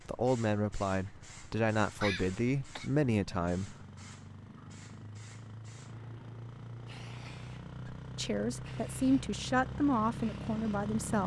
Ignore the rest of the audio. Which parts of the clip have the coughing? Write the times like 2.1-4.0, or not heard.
2.0-2.9.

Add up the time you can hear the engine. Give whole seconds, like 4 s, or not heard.
11 s.